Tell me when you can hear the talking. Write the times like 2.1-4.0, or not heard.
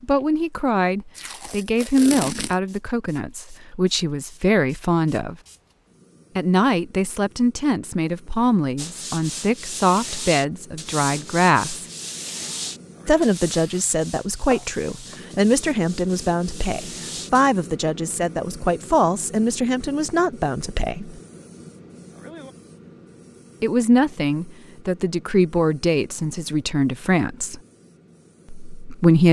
0.0-5.3, 6.3-11.8, 13.1-21.2, 23.6-27.6, 28.7-29.2.